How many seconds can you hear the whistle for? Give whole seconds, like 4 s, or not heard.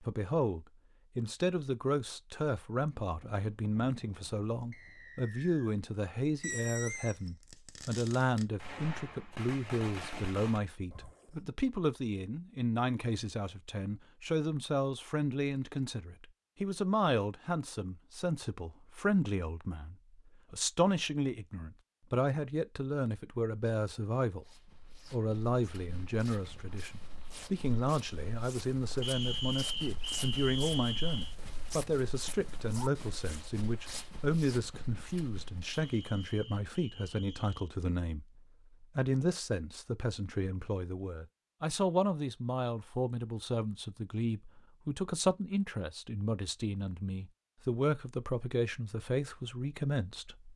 5 s.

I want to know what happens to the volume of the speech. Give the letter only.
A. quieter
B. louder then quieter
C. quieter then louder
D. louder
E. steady
E.